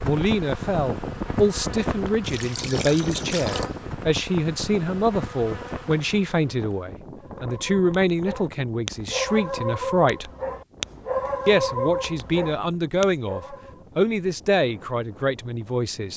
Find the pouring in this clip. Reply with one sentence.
The pouring can be heard from 2.2 to 3.7 s.